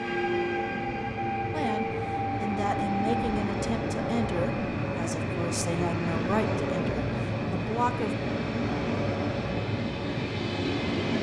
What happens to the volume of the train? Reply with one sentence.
The volume of the train stays about the same.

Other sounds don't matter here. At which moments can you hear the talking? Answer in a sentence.
You can hear the talking from 1.5 to 8.2 s.